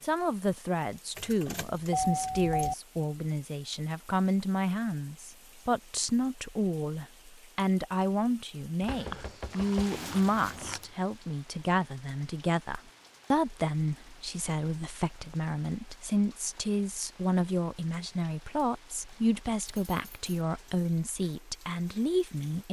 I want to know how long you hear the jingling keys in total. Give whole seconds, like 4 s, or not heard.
3 s.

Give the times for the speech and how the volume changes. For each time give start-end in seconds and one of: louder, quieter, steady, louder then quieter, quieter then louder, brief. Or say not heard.
0.0-22.6 steady.